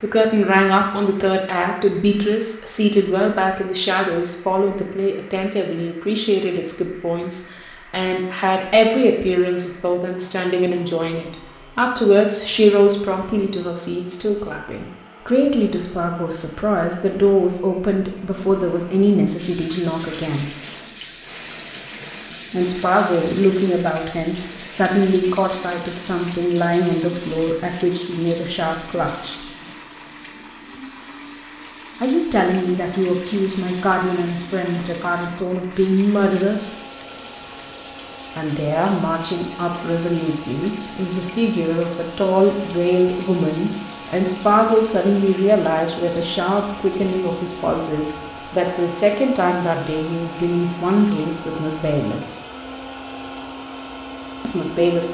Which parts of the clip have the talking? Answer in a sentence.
The talking can be heard from 0.0 to 20.6 s, from 22.5 to 29.4 s, from 32.0 to 36.7 s, from 38.4 to 52.5 s and from 54.5 to 55.0 s.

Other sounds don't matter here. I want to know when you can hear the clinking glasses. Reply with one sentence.
You can't hear the clinking glasses here.